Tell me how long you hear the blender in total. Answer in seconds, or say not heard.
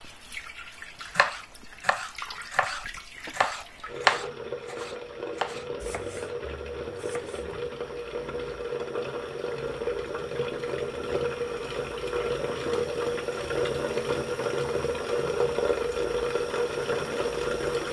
not heard.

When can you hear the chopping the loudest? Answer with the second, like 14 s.
4 s.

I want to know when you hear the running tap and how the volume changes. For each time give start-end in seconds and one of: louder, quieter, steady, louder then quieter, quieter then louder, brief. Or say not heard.
0.0-17.8 louder.